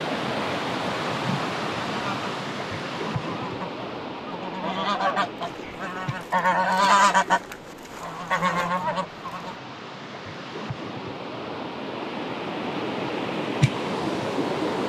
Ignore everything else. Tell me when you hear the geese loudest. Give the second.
7 s.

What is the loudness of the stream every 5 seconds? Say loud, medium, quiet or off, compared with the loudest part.
loud, medium, loud.